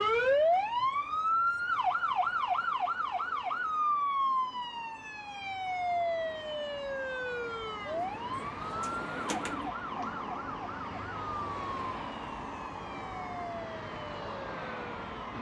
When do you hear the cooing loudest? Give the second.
9 s.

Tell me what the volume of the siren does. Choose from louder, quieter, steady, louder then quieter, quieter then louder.
quieter.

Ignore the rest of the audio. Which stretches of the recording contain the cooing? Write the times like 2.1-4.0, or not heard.
7.9-9.7.